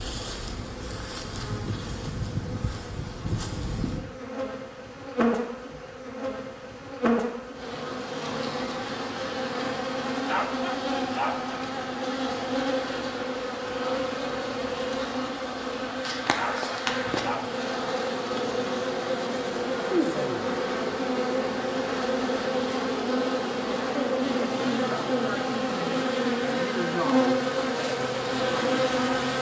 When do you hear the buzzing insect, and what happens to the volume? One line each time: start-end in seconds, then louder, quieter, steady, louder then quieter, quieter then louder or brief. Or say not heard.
0.0-29.3 louder.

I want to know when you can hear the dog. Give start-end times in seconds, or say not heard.
10.2-11.6, 16.4-17.6.